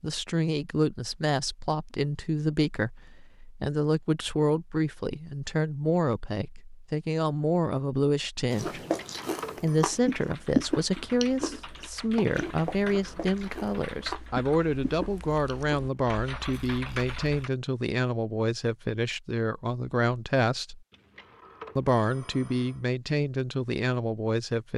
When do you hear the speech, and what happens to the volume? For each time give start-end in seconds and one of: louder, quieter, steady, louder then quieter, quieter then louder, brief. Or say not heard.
0.0-8.8 steady
9.6-20.8 steady
21.8-24.7 brief.